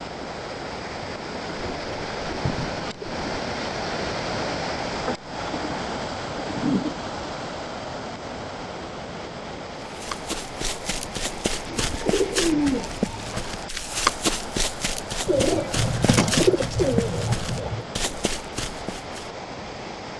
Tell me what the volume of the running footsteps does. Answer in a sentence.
The loudness of the running footsteps goes up, then down.